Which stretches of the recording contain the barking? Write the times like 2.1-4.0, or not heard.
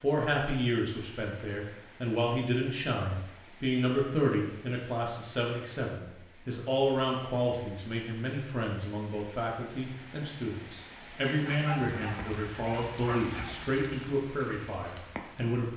11.2-13.7.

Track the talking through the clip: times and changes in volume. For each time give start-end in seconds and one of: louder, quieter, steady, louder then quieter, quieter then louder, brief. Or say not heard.
0.0-15.7 steady.